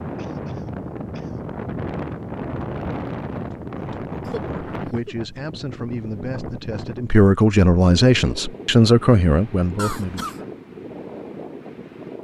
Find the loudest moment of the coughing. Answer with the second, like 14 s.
10 s.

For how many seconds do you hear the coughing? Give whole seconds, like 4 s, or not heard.
3 s.